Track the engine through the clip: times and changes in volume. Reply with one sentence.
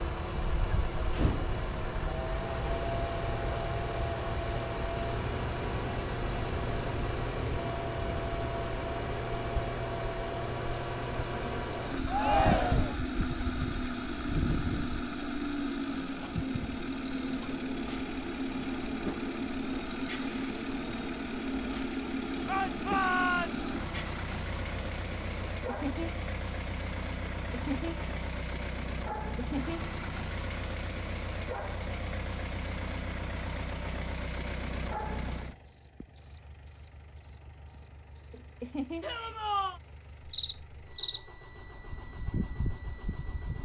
You can hear the engine from 0.0 to 43.6 s, getting quieter.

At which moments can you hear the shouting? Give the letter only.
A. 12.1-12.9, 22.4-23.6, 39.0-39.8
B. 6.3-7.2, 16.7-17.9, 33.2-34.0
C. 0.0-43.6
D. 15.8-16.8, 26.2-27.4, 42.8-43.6
A.